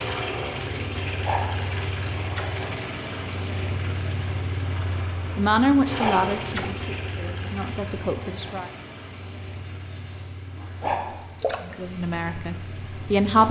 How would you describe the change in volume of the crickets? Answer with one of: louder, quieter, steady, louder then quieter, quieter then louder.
louder.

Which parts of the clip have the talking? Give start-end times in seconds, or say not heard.
5.3-8.7, 11.6-13.4.